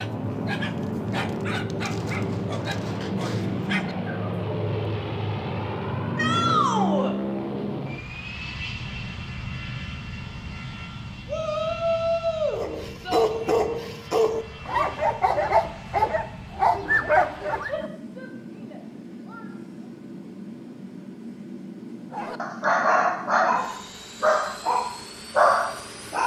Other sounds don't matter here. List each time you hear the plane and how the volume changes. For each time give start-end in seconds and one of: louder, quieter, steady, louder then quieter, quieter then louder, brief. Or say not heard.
0.0-26.2 quieter.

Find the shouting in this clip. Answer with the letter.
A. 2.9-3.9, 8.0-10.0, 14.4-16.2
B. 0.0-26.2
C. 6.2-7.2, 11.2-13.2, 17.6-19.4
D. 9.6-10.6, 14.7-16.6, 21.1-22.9
C.